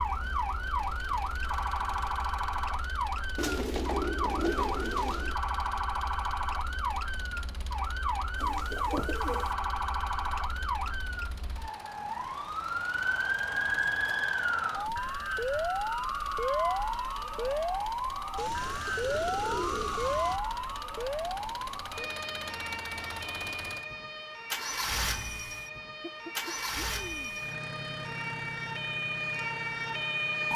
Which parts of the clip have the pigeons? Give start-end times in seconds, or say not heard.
3.4-5.3, 8.3-9.6, 18.4-20.4, 26.0-27.4.